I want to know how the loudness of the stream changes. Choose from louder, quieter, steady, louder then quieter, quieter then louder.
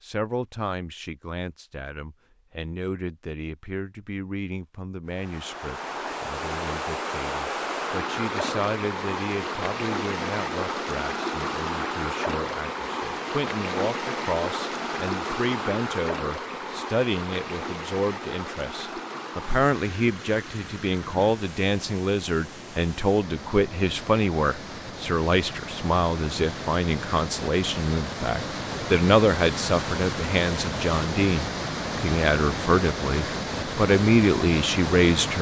quieter then louder.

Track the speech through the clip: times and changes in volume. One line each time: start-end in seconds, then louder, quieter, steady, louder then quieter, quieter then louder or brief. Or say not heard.
0.0-35.3 louder.